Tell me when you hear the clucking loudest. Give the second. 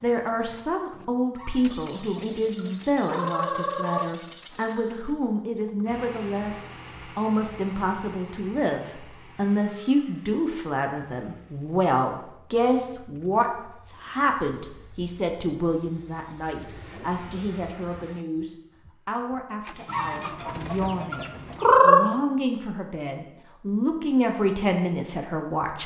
22 s.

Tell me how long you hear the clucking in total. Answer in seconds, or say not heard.
5 s.